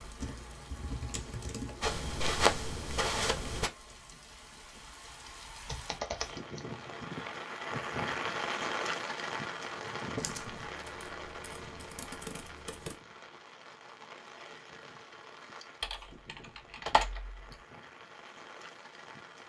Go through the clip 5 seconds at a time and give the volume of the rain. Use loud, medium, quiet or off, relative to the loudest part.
quiet, loud, medium, quiet.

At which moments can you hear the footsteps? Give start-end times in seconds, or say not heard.
1.8-3.7.